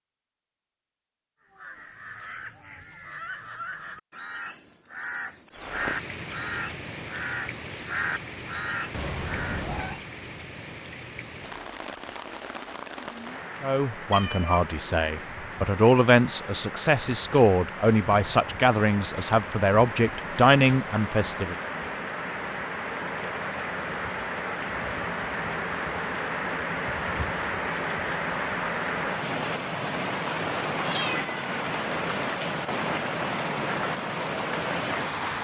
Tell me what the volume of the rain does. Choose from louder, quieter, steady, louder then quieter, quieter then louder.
louder.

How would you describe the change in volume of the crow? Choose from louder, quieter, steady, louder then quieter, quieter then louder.
louder.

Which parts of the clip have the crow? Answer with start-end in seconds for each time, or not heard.
1.5-9.7.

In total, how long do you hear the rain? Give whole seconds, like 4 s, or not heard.
30 s.